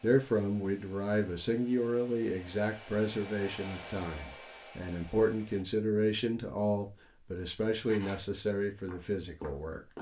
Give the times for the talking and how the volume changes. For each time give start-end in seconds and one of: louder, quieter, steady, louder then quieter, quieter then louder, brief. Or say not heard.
0.0-9.9 steady.